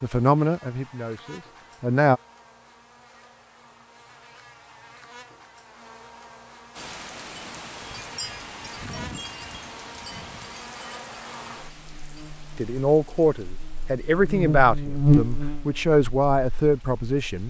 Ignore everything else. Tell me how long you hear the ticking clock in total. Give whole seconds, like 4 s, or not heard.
not heard.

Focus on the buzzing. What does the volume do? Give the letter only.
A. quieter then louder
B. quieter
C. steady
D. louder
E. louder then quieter
D.